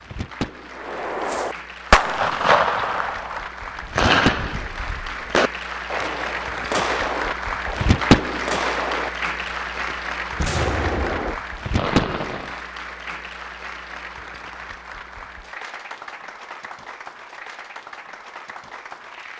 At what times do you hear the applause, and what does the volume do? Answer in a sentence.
The applause can be heard from 0.0 to 19.3 s, getting louder then quieter.